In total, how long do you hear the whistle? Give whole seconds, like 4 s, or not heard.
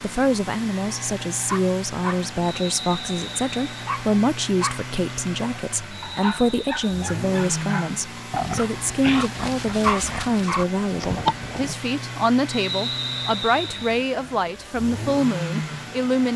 4 s.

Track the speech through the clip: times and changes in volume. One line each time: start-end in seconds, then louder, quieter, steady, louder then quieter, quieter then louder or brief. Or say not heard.
0.0-16.3 steady.